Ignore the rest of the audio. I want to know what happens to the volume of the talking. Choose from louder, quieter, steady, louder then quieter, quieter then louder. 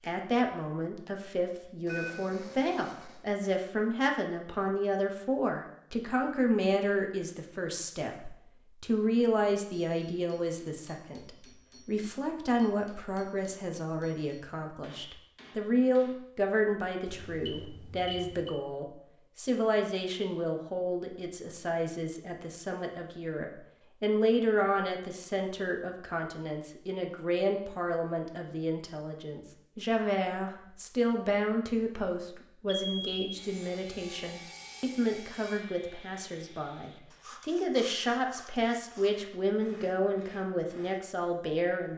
steady.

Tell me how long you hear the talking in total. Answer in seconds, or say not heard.
42 s.